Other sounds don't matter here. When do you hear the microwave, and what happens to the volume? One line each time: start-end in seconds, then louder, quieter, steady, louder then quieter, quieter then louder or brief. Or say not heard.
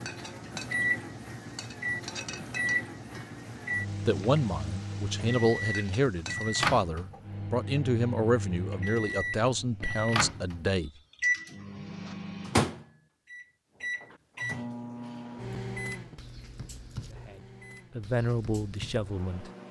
0.0-19.6 quieter.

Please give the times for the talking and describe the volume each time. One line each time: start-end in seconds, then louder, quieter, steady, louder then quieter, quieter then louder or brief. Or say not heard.
4.0-10.9 steady
17.1-19.5 brief.